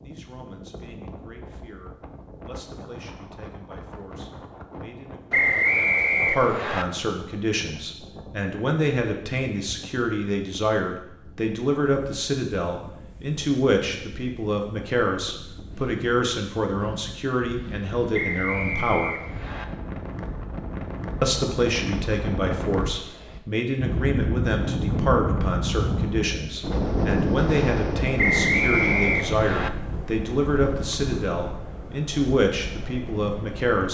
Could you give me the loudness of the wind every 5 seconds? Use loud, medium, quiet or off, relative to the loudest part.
quiet, quiet, quiet, quiet, loud, loud, medium.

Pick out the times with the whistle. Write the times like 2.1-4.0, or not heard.
5.3-6.8, 18.1-19.6, 28.1-29.7.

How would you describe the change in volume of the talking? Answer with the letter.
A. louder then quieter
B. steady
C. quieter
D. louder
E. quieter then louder
D.